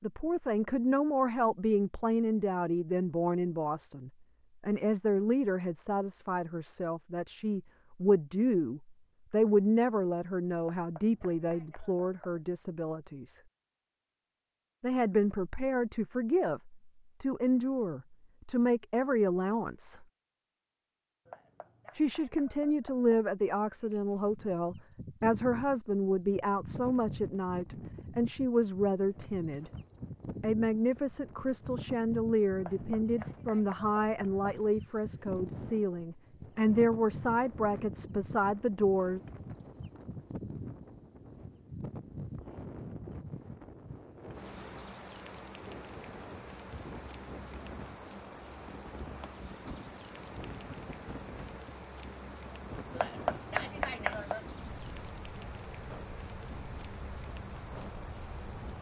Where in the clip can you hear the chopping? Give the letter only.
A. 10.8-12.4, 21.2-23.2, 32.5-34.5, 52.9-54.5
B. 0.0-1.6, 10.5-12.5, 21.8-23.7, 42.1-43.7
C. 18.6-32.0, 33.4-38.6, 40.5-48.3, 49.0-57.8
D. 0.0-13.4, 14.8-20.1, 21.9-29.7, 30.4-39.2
A.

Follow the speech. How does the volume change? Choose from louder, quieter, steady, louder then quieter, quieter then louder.
steady.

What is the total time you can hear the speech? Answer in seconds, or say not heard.
35 s.